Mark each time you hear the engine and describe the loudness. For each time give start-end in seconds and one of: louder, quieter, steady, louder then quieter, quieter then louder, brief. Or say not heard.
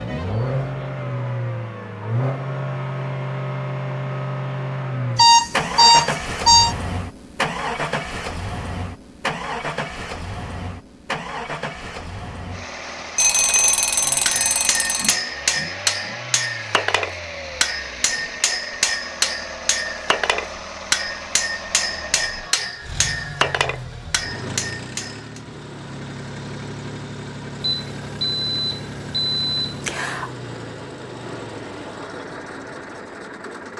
0.0-33.7 quieter.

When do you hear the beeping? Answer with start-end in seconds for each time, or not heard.
5.2-6.8, 13.2-15.2, 27.6-30.3.